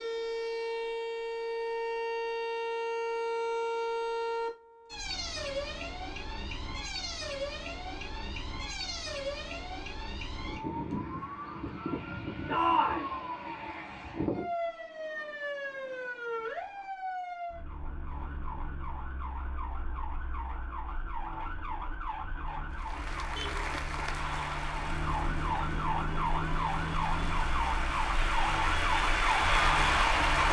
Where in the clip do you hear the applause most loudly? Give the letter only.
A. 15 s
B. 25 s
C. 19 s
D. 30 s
D.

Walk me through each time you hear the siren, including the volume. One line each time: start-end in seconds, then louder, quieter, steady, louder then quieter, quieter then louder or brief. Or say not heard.
0.0-30.4 quieter then louder.